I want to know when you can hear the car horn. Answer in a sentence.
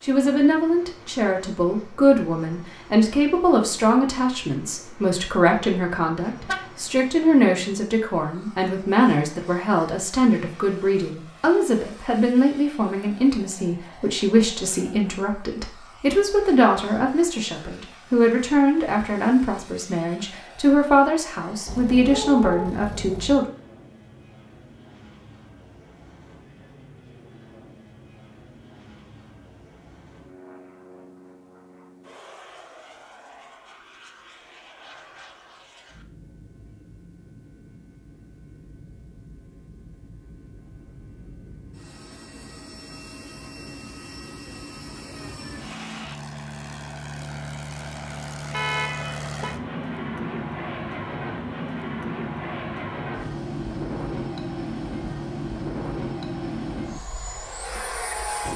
You can hear the car horn from 6.2 to 6.8 s, from 21.6 to 23.5 s and from 48.5 to 49.5 s.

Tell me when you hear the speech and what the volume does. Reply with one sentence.
The speech can be heard from 0.0 to 23.4 s, at a steady volume.